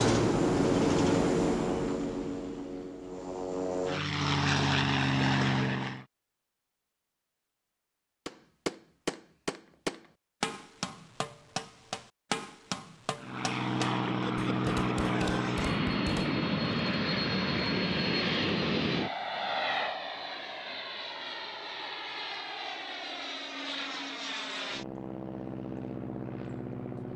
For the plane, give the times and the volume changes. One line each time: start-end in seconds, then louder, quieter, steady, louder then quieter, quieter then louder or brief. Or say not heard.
0.0-6.0 quieter then louder
13.2-27.1 quieter.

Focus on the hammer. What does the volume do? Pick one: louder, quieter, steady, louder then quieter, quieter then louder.
quieter.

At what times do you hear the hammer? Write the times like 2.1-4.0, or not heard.
8.2-16.4.